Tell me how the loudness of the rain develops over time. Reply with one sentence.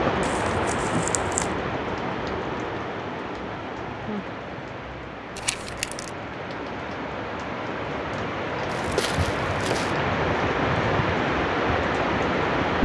The volume of the rain goes down, then up.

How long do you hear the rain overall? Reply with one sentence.
The rain can be heard for 13 seconds in total.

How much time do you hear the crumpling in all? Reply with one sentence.
The crumpling can be heard for 3 seconds in total.